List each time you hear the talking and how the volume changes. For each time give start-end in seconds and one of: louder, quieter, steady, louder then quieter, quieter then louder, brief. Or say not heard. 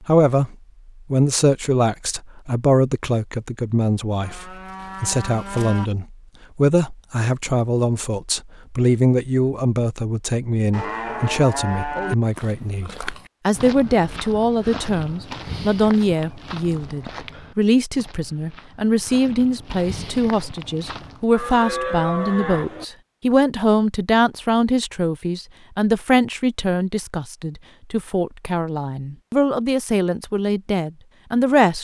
0.1-31.7 steady.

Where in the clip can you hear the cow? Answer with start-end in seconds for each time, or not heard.
4.2-5.8, 10.7-12.2, 21.3-22.9.